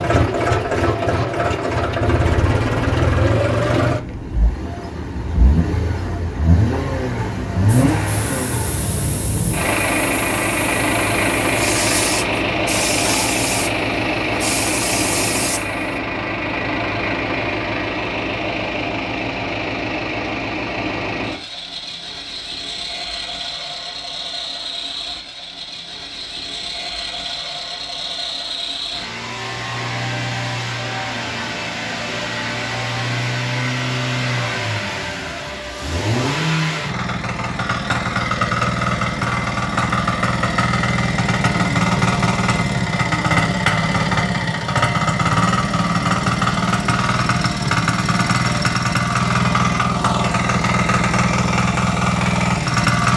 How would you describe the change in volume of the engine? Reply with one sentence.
The loudness of the engine goes down, then up.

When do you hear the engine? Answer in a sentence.
You can hear the engine from 0.0 to 53.1 s.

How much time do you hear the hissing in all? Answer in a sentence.
The hissing can be heard for 8 seconds in total.